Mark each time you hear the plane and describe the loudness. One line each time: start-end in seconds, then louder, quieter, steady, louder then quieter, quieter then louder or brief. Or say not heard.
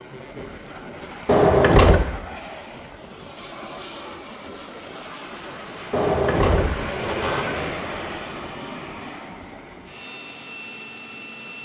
0.0-11.6 louder then quieter.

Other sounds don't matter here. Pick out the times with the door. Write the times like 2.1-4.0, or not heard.
1.2-2.0, 5.9-7.6.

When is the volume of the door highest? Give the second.
2 s.